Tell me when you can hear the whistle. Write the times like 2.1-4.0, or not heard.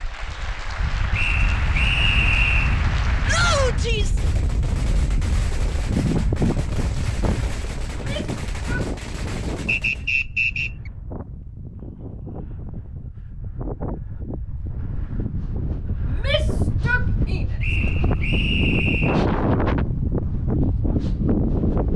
1.1-2.8, 9.7-10.9, 17.6-19.2.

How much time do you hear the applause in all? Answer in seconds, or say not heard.
4 s.